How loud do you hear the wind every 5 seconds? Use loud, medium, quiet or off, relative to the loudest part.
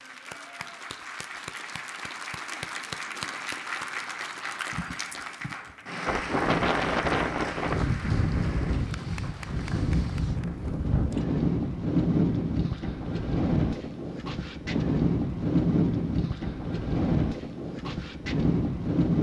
off, loud, loud, loud.